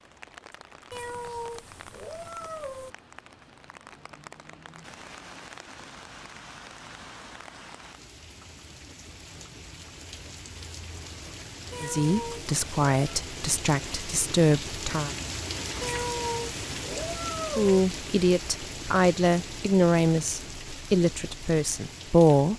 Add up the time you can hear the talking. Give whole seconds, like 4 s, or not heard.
8 s.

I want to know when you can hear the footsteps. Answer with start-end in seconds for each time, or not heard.
not heard.